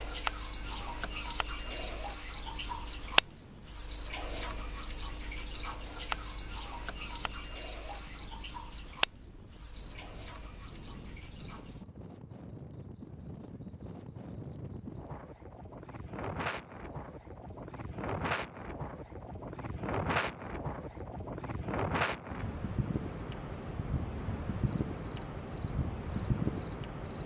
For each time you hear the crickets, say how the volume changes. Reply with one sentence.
The crickets can be heard from 0.0 to 27.2 s, getting quieter.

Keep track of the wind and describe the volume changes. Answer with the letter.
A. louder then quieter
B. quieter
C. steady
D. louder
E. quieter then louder
D.